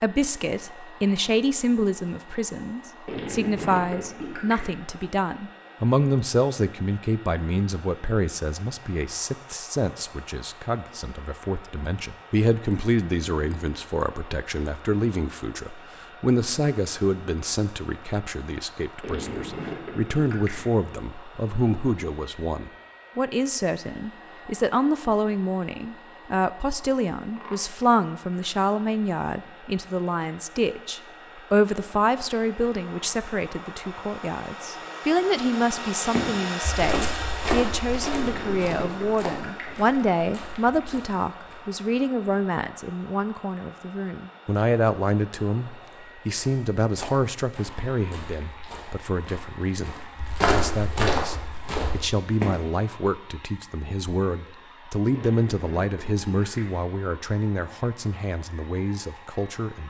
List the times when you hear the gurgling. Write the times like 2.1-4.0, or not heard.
3.0-4.7, 19.0-20.6, 38.1-39.8, 55.1-56.7.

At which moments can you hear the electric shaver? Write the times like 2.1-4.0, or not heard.
not heard.